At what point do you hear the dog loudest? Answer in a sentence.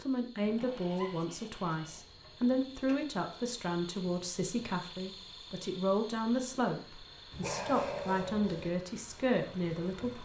The loudest moment of the dog is at 8 seconds.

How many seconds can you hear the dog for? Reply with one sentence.
The dog can be heard for 2 seconds in total.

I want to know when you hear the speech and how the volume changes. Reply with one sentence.
The speech can be heard from 0.0 to 10.2 s, at a steady volume.